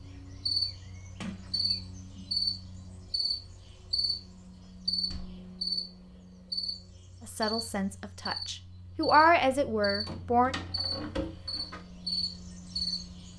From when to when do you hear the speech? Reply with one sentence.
You can hear the speech from 7.2 to 10.5 s.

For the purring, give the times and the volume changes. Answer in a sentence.
The purring can't be heard in this clip.